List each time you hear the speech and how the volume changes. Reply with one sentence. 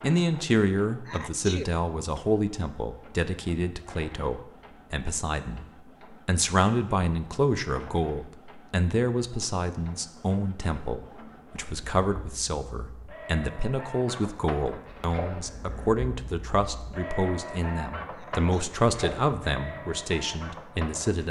You can hear the speech from 0.0 to 21.2 s, at a steady volume.